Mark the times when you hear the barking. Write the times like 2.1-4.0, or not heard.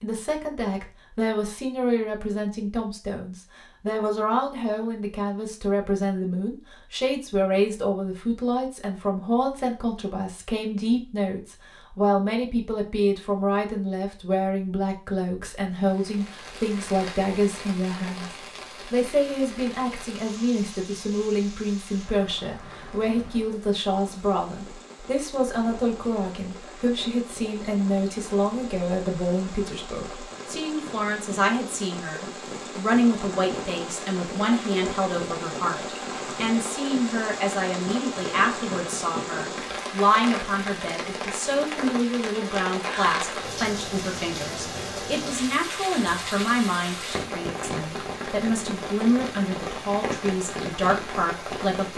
not heard.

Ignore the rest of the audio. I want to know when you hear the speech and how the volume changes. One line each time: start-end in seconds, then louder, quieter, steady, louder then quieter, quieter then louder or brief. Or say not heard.
0.0-51.9 steady.